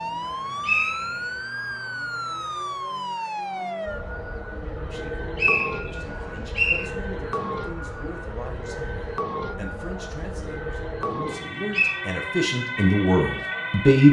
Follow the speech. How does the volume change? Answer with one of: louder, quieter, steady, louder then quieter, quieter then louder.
louder.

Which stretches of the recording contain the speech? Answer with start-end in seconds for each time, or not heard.
4.9-14.0.